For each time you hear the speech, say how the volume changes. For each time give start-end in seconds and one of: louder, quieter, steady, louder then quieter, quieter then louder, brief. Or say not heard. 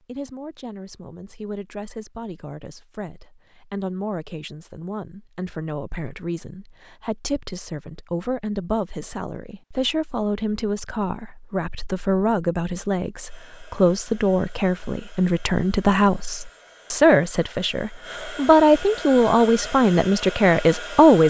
0.0-21.2 louder.